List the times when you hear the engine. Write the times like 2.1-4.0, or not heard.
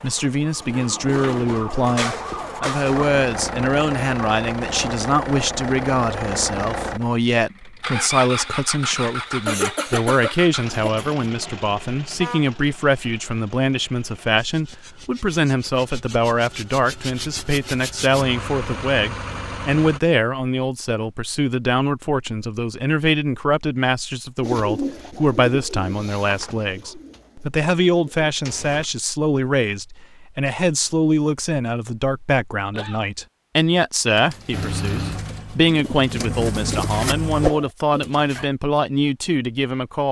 2.8-20.0, 34.5-37.5.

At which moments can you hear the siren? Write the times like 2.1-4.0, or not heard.
0.0-3.1.